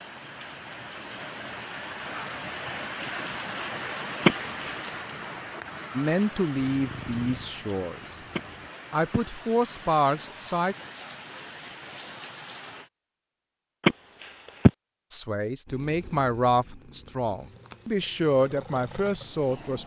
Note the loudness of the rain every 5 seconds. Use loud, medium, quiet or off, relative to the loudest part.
loud, medium, medium, off.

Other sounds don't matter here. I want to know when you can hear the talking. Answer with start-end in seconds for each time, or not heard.
6.0-8.2, 8.9-10.8, 15.1-19.8.